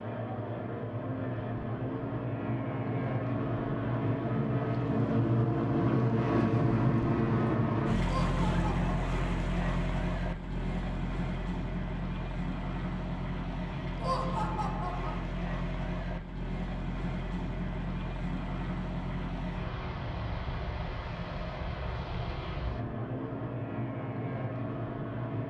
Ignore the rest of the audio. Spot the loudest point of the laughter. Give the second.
14 s.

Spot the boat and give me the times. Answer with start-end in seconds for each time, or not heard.
0.0-25.4.